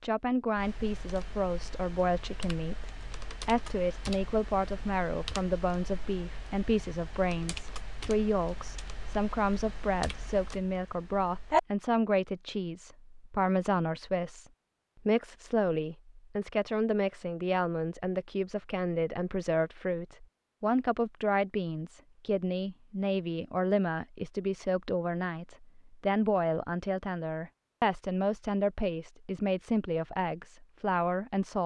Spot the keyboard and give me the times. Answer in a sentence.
The keyboard can be heard from 0.6 to 11.6 s.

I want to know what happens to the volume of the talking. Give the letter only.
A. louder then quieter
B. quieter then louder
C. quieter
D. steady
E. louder
D.